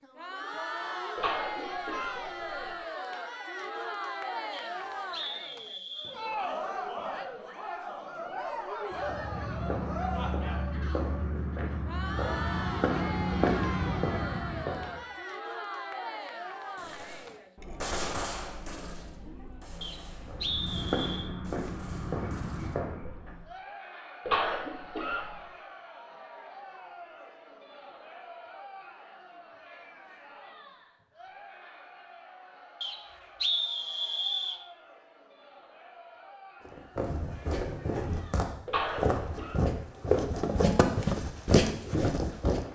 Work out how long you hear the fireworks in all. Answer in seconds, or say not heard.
6 s.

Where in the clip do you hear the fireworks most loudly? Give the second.
18 s.